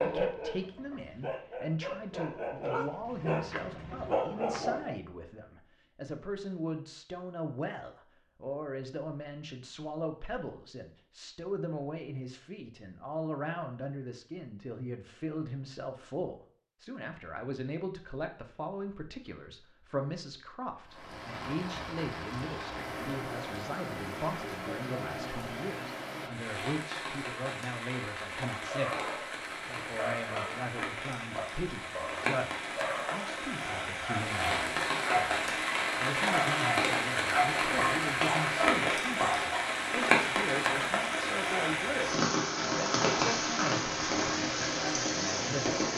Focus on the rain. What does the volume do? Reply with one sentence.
The loudness of the rain goes up.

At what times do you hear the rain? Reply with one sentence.
The rain can be heard from 20.9 to 45.9 s.